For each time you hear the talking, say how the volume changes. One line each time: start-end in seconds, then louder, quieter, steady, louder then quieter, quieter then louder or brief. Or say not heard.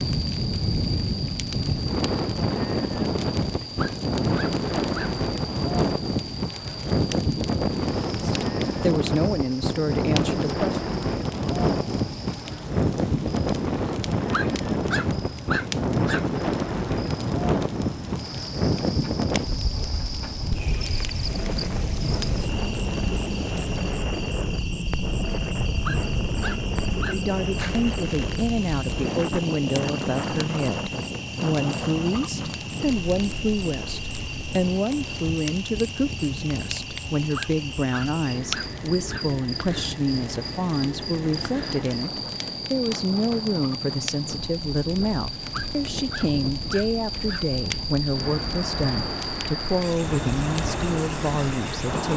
8.2-10.8 brief
27.1-52.1 steady.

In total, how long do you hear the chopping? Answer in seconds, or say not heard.
not heard.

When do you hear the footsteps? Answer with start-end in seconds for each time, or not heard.
not heard.